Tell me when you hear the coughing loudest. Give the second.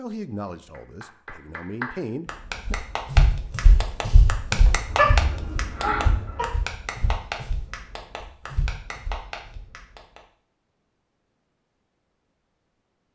5 s.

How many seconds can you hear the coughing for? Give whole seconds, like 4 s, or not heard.
2 s.